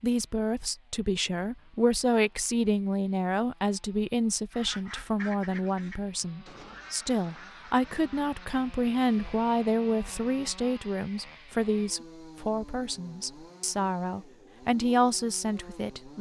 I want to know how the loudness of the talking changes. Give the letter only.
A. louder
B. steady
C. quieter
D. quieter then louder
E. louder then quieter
B.